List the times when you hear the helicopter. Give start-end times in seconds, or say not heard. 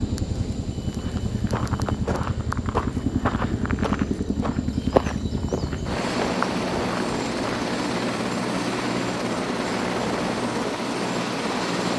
0.0-11.9.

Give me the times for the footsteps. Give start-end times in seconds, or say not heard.
0.9-7.7.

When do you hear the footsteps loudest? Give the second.
5 s.